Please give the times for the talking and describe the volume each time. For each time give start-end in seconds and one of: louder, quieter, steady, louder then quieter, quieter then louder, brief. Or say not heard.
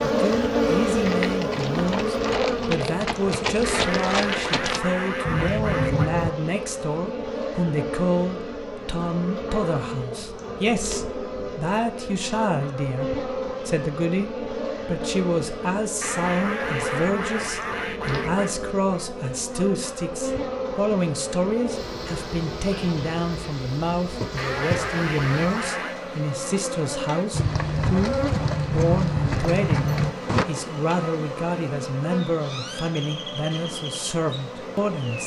0.0-35.2 steady.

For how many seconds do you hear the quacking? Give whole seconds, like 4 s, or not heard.
7 s.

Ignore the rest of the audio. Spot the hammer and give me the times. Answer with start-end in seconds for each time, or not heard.
not heard.